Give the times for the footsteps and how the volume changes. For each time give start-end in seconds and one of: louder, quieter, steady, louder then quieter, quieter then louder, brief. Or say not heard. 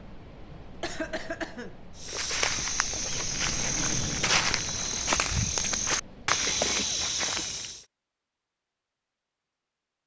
1.9-7.8 steady.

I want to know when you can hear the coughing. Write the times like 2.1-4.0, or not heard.
0.8-1.8, 6.5-7.5.